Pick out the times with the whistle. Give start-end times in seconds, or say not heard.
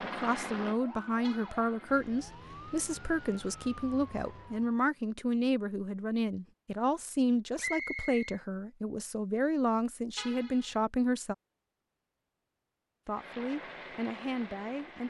7.5-8.4.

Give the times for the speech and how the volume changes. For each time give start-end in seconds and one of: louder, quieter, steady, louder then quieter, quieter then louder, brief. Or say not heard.
0.0-11.3 steady
13.1-15.0 brief.